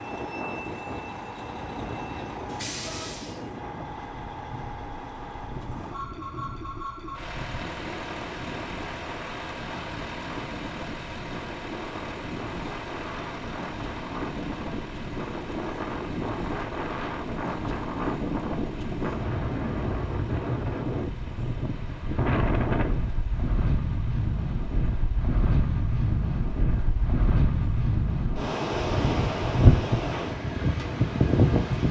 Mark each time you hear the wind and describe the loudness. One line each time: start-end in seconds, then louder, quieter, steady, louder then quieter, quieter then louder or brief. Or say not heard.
0.0-31.8 louder.